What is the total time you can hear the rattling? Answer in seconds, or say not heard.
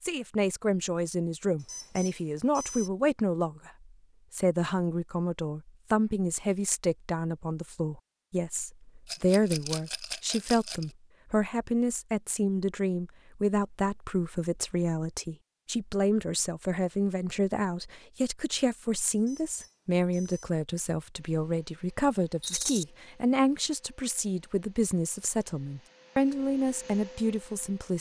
2 s.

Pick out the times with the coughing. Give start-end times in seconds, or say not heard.
not heard.